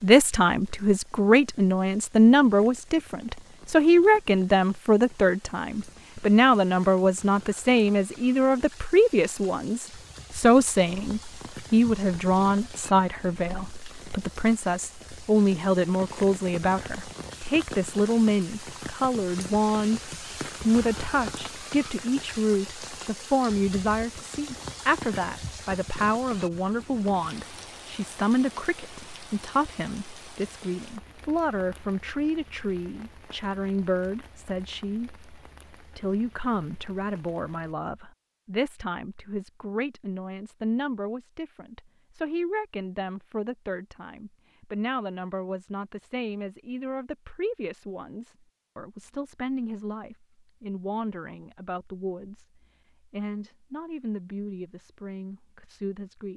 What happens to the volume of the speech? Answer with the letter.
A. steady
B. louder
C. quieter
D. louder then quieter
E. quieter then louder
C.